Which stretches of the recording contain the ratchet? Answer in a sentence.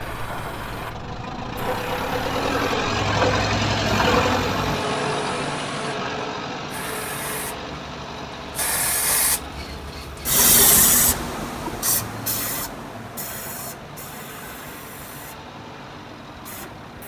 You can't hear the ratchet here.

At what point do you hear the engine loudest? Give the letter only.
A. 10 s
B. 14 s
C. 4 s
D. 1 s
C.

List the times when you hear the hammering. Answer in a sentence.
You can't hear the hammering here.